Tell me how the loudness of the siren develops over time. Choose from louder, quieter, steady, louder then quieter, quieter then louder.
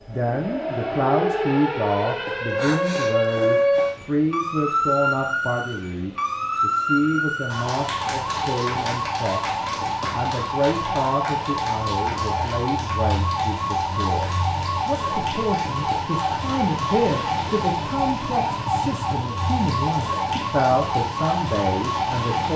steady.